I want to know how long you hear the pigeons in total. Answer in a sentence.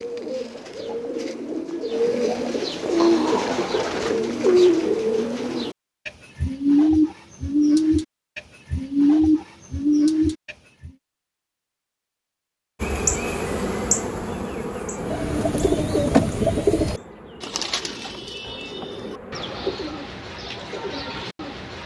You can hear the pigeons for 18 seconds altogether.